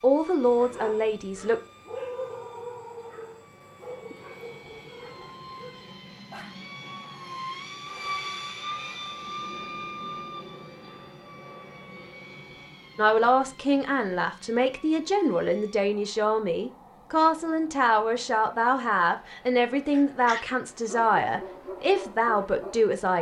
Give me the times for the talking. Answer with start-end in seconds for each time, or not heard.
0.0-1.6, 12.9-23.1.